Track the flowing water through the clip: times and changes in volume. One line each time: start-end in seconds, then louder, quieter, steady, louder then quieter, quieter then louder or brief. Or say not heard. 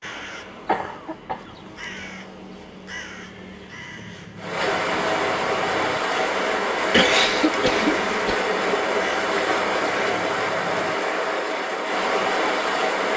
4.3-13.1 steady.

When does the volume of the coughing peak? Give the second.
7 s.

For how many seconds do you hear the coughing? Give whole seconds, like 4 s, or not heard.
3 s.